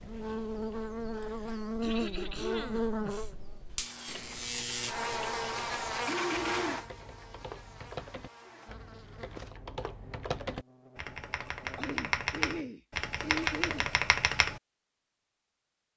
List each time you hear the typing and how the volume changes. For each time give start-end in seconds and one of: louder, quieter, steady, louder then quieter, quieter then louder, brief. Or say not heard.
4.0-14.6 louder.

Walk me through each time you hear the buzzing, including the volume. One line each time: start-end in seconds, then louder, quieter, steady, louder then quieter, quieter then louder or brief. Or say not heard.
0.0-11.8 quieter.